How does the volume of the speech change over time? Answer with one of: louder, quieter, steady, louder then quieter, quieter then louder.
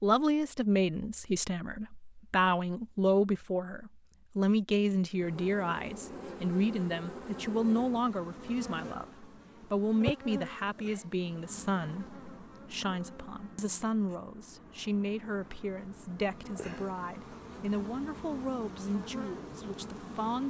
quieter.